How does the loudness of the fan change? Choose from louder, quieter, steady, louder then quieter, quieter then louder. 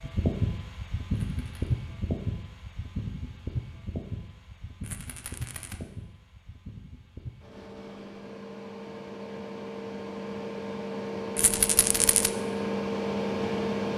quieter then louder.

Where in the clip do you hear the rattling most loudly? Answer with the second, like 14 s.
12 s.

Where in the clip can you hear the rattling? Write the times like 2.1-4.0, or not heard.
1.2-1.8, 4.8-5.8, 11.3-12.3.